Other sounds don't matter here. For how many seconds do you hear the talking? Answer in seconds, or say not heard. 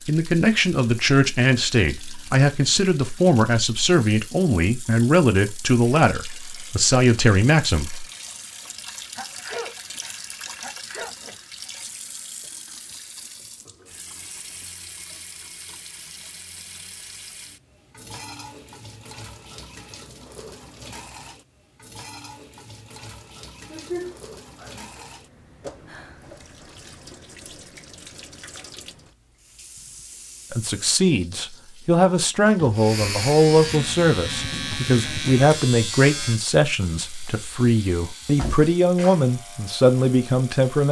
18 s.